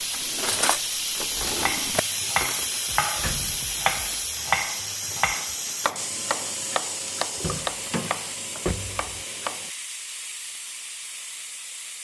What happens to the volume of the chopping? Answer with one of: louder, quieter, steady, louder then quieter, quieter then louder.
quieter.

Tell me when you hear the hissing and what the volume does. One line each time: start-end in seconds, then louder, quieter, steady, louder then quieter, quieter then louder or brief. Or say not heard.
0.0-11.9 quieter.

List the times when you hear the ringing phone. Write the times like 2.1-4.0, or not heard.
not heard.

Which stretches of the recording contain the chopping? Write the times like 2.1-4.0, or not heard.
1.6-9.7.